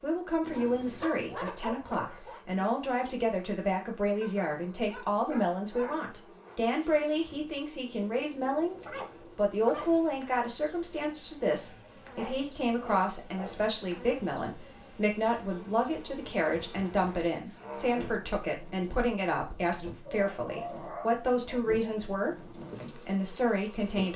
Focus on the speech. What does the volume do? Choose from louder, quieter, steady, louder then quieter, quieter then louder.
steady.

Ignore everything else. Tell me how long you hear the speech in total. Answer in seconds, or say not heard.
24 s.